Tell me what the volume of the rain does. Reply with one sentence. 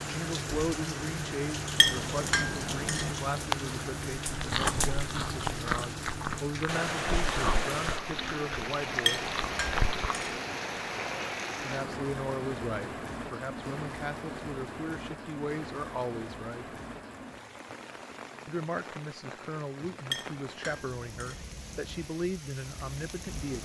The loudness of the rain goes down.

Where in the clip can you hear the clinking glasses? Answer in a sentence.
The clinking glasses can be heard from 1.8 to 3.1 s, from 9.1 to 10.4 s and from 20.1 to 21.4 s.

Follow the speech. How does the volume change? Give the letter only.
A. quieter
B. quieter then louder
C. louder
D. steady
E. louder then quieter
D.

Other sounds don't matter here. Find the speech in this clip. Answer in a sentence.
The speech can be heard from 0.0 to 9.3 s, from 11.6 to 16.6 s and from 18.4 to 23.5 s.